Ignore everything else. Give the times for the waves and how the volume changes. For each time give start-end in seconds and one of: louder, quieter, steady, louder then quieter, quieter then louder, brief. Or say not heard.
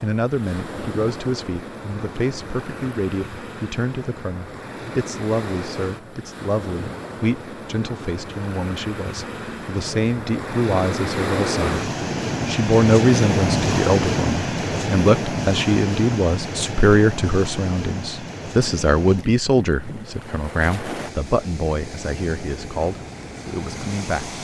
0.0-24.3 louder then quieter.